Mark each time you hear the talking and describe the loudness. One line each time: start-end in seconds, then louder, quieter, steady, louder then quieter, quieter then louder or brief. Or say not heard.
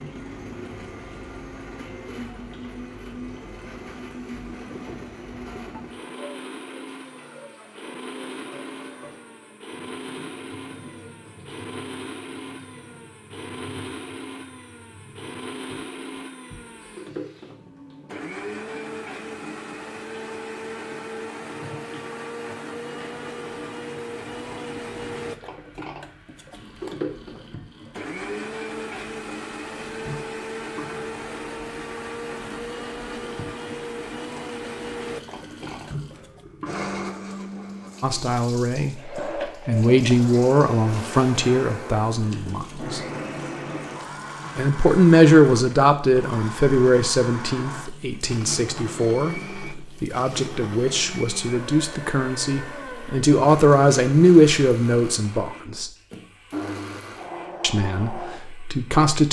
38.0-43.0 louder then quieter
44.5-55.9 quieter then louder
57.6-59.2 brief.